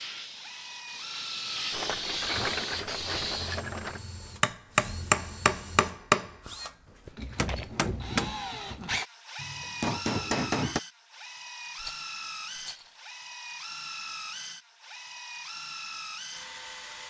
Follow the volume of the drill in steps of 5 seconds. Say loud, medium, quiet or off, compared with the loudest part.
medium, loud, loud, loud.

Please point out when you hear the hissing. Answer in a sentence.
The hissing can be heard from 0.0 to 3.6 s.